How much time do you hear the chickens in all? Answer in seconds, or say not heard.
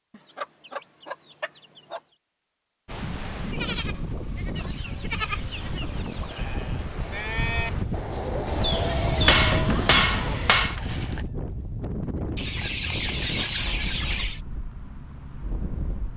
8 s.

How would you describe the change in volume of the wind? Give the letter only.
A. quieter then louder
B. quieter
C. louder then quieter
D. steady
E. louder
C.